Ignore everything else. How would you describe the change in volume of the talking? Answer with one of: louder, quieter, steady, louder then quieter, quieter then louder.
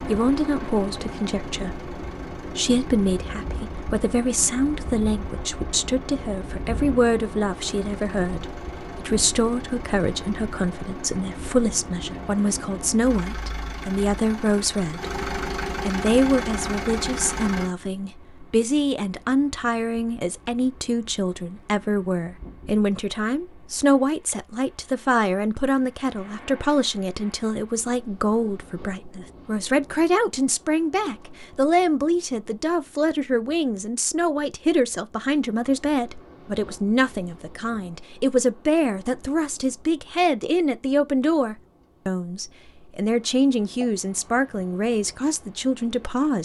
steady.